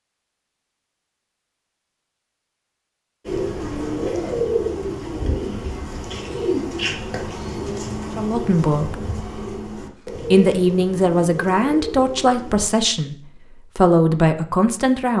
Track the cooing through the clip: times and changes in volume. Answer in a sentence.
The cooing can be heard from 3.2 to 12.7 s, getting quieter.